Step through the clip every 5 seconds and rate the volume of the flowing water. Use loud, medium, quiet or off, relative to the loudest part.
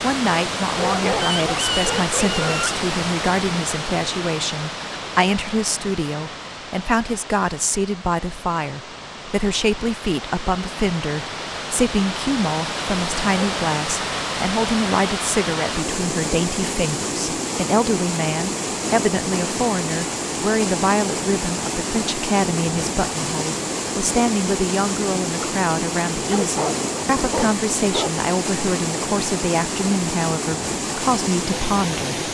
loud, medium, loud, loud, loud, loud, loud.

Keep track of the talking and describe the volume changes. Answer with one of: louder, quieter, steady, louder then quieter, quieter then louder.
steady.